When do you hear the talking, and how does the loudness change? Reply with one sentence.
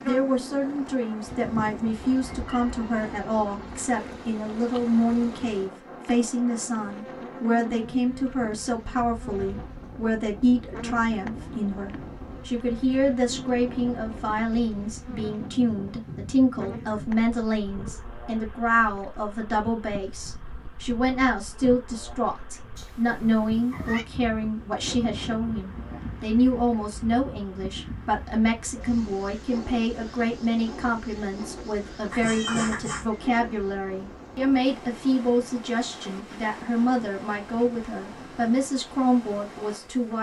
You can hear the talking from 0.0 to 40.1 s, at a steady volume.